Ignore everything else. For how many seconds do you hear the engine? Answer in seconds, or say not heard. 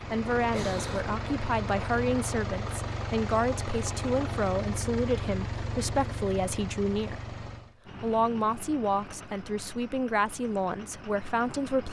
12 s.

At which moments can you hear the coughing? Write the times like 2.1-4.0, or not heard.
0.5-1.1.